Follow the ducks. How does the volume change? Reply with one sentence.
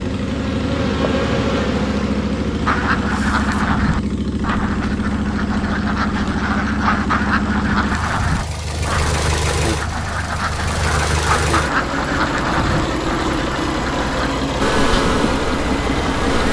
The volume of the ducks stays about the same.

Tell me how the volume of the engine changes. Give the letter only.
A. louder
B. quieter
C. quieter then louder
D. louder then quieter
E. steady
E.